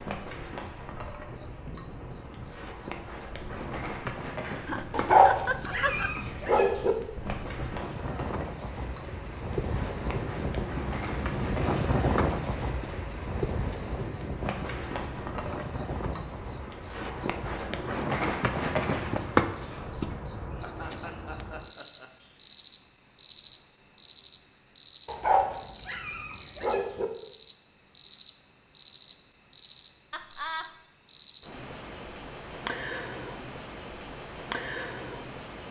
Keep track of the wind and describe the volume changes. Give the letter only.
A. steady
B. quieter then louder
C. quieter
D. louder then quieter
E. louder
D.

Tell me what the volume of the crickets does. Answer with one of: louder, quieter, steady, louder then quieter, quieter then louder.
louder.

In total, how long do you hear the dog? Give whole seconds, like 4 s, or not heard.
4 s.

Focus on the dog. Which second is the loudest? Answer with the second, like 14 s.
5 s.